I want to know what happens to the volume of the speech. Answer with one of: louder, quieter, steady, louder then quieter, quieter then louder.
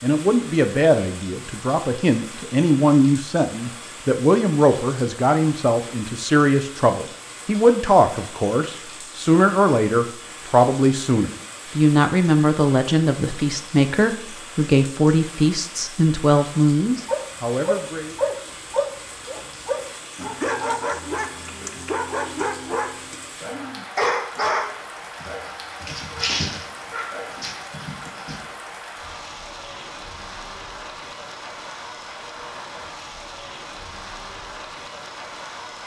steady.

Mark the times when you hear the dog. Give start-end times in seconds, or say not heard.
17.1-28.4.